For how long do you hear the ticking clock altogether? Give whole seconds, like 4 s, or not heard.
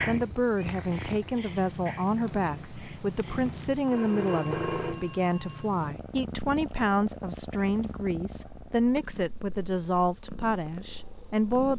not heard.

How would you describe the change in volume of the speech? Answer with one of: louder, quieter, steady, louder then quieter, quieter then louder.
steady.